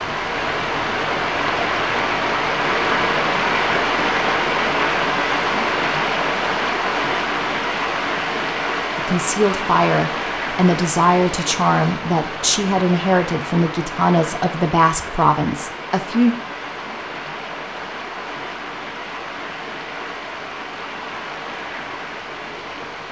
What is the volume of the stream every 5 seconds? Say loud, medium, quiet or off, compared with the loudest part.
loud, loud, medium, medium, medium.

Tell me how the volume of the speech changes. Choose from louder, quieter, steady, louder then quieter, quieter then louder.
steady.